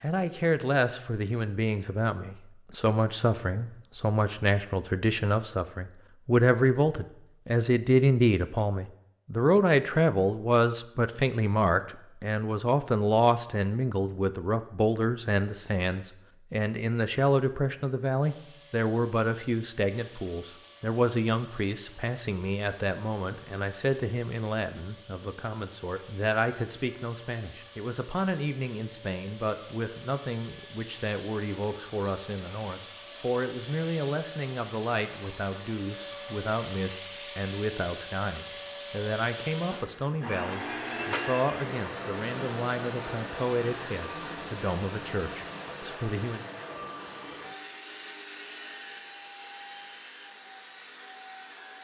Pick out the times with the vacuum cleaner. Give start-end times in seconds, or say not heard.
18.2-51.8.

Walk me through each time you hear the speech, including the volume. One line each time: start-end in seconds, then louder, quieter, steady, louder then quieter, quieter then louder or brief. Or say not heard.
0.0-46.5 quieter.